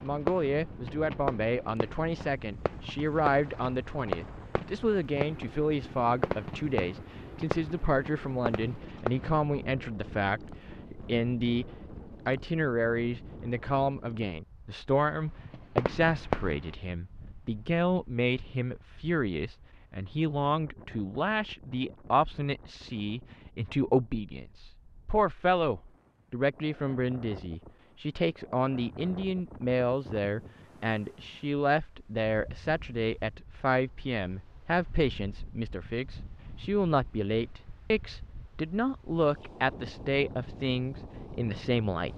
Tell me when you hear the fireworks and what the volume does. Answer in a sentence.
You can hear the fireworks from 0.0 to 9.4 s, at a steady volume; and briefly from 15.3 to 16.7 s.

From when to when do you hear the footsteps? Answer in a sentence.
The footsteps can't be heard in this clip.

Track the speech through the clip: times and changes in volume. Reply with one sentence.
The speech can be heard from 0.0 to 42.1 s, at a steady volume.